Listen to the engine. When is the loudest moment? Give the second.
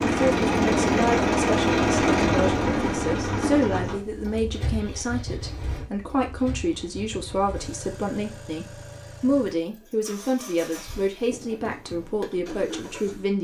2 s.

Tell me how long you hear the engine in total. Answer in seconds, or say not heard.
13 s.